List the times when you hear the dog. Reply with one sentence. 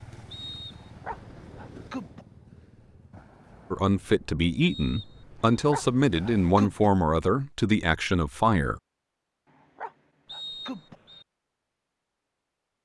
You can hear the dog from 0.8 to 2.2 s, from 5.5 to 6.9 s and from 9.5 to 10.9 s.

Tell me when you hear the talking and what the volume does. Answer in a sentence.
The talking can be heard from 3.7 to 8.8 s, at a steady volume.